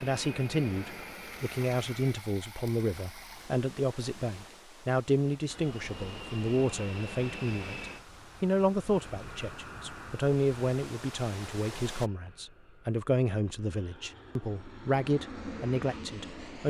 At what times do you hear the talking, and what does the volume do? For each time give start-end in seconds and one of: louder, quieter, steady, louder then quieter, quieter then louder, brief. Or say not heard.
0.0-16.6 steady.